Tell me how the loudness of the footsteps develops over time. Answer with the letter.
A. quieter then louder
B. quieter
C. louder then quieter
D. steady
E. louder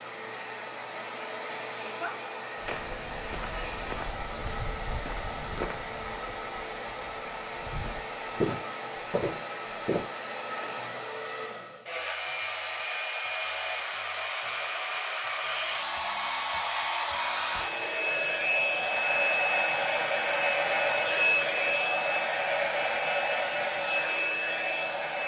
A.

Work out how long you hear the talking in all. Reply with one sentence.
The talking can't be heard in this clip.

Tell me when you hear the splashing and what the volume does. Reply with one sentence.
You can't hear the splashing here.